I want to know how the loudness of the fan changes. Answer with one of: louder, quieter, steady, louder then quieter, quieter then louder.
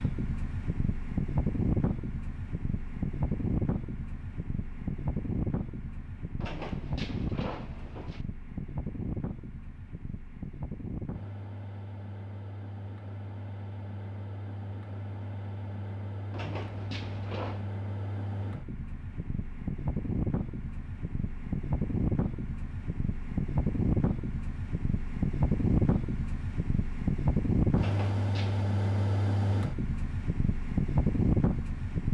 quieter then louder.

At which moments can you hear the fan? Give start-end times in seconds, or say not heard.
0.0-32.1.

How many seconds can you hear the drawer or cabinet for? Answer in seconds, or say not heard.
4 s.